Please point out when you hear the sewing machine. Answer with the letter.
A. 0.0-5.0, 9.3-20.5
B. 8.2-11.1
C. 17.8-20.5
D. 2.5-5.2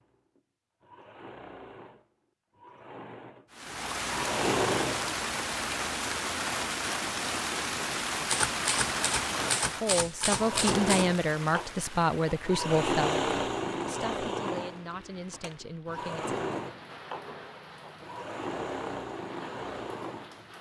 A.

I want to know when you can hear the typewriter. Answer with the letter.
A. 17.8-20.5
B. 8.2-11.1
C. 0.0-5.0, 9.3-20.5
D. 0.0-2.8
B.